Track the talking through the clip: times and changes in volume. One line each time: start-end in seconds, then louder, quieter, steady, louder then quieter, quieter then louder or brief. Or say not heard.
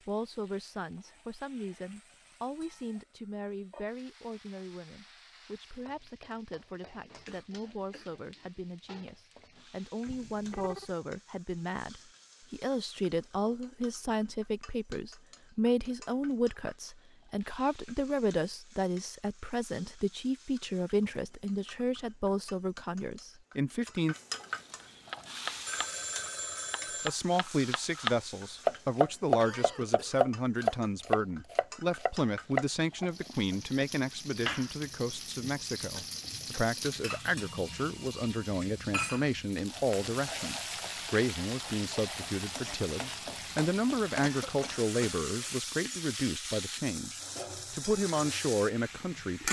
0.1-24.1 louder
27.1-49.4 steady.